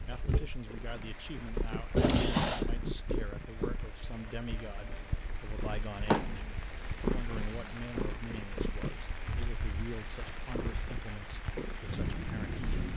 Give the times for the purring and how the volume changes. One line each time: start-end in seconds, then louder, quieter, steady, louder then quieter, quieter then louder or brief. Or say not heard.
0.0-12.9 steady.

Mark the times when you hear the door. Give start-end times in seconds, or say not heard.
1.9-2.6, 6.0-6.5, 9.2-9.6.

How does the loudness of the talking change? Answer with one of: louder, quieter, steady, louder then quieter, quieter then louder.
steady.